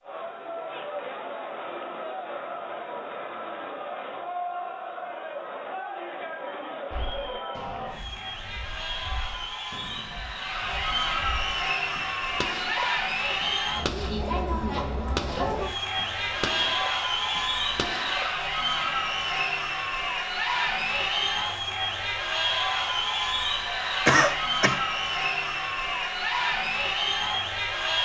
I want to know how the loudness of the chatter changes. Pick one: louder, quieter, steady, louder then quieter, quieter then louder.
louder.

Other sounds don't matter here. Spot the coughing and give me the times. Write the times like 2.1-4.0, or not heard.
24.1-24.8.